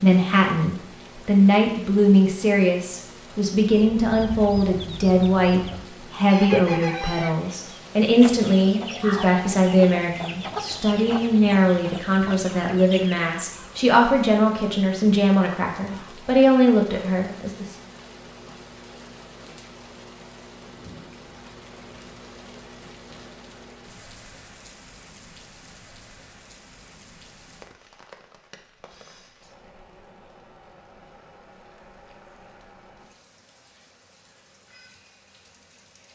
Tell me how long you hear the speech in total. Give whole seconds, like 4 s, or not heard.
18 s.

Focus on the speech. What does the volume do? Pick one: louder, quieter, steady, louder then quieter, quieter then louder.
steady.